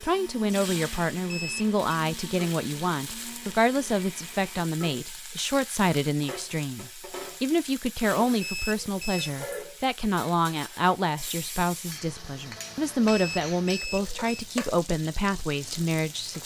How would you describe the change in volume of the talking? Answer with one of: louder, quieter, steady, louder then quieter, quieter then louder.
steady.